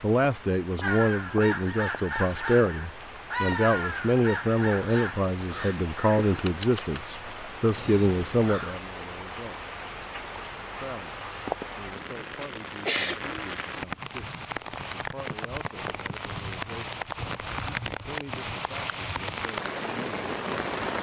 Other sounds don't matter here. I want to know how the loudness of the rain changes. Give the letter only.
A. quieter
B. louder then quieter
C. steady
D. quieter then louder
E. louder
E.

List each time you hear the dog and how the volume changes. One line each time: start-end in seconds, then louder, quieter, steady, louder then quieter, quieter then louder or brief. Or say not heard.
not heard.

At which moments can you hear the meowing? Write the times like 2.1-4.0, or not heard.
not heard.